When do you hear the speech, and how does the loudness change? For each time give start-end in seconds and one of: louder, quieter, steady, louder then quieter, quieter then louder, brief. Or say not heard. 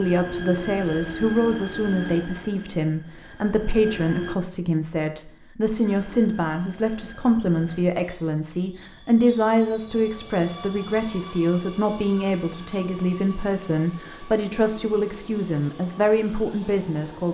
0.0-17.2 steady.